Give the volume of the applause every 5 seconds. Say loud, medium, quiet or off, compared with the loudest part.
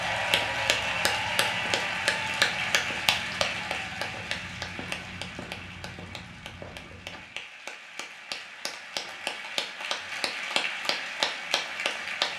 loud, medium, loud.